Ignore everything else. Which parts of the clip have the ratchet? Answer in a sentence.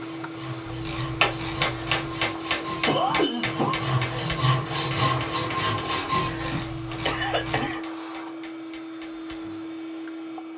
The ratchet can be heard from 0.7 to 2.2 s and from 6.2 to 7.8 s.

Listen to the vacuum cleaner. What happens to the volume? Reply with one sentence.
The loudness of the vacuum cleaner stays about the same.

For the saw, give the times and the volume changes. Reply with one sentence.
The saw can be heard from 0.0 to 6.6 s, getting louder.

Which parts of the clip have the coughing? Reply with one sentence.
You can hear the coughing from 2.6 to 3.8 s and from 6.2 to 7.9 s.